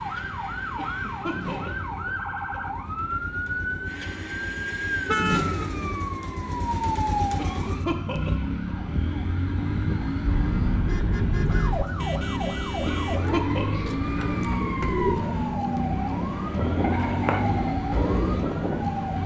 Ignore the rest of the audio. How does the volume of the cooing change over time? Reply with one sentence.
The volume of the cooing goes up.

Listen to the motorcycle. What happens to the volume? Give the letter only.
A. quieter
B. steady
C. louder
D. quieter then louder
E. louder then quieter
C.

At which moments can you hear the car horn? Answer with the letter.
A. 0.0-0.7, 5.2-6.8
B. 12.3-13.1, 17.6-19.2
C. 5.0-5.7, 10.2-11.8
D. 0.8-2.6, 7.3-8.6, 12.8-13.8
C.